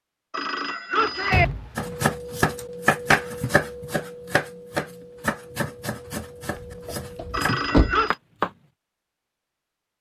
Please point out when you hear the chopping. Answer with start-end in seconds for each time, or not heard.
1.8-8.5.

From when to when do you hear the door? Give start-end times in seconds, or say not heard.
1.0-1.9, 6.5-8.1.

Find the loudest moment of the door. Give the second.
8 s.